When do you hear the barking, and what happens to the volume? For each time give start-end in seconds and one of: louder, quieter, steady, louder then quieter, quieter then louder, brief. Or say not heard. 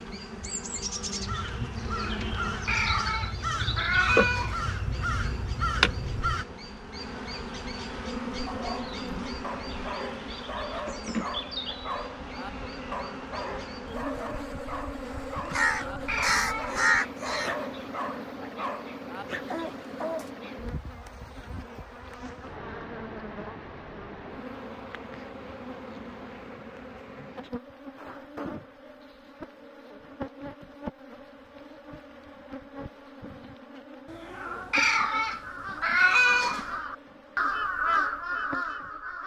8.4-20.3 steady.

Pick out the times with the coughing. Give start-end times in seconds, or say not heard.
not heard.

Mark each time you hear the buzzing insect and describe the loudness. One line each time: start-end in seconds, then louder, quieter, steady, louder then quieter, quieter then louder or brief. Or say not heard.
0.0-39.2 quieter.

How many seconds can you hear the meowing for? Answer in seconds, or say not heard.
6 s.